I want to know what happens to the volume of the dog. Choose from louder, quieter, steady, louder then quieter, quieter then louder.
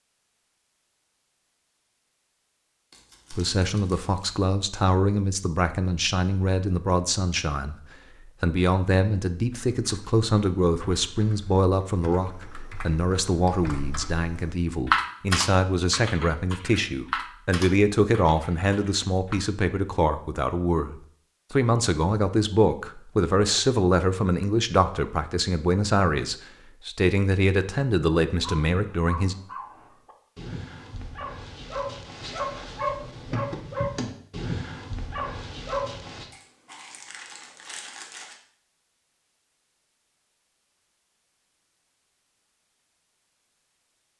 louder.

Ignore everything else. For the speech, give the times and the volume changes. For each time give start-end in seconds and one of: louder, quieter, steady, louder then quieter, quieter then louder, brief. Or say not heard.
3.3-29.4 steady.